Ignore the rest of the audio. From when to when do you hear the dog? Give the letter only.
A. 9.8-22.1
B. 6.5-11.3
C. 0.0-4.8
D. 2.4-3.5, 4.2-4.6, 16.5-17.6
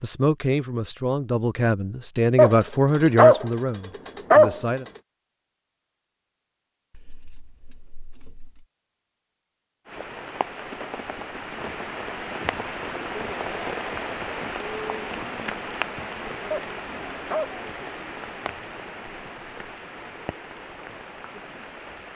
D.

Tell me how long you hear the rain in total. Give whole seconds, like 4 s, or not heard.
12 s.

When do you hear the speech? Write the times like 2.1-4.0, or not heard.
0.0-4.8.